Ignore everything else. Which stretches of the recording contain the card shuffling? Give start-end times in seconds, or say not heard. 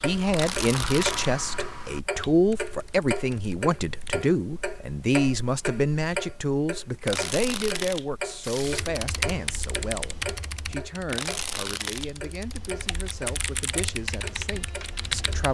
0.3-1.4, 7.0-8.8, 11.1-12.1.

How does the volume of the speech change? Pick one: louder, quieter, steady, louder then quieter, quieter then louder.
quieter.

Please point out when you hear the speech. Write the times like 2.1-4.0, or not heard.
0.0-15.5.